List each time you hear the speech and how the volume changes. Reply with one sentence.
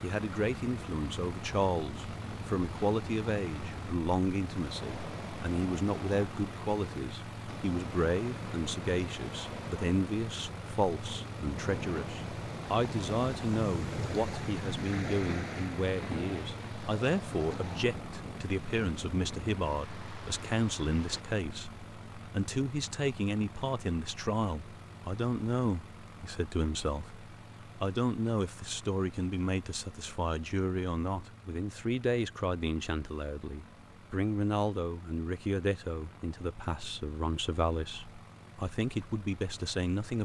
The speech can be heard from 0.0 to 40.2 s, at a steady volume.